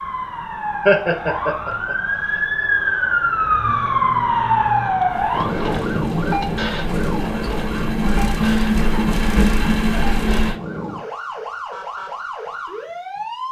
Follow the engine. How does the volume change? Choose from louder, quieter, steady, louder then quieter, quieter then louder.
louder.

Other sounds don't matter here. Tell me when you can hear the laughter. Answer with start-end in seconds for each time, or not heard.
0.8-1.9.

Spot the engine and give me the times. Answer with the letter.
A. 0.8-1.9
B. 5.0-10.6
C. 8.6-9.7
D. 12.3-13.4
B.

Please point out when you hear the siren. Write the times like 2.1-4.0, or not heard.
0.0-13.4.